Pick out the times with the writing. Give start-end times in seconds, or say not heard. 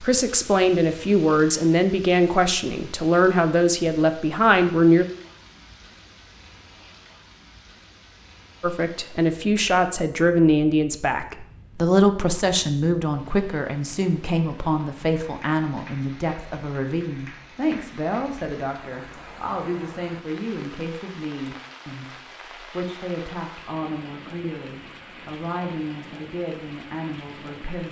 not heard.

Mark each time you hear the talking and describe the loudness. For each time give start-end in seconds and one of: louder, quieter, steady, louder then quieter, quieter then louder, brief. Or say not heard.
0.0-5.0 steady
8.6-27.8 quieter.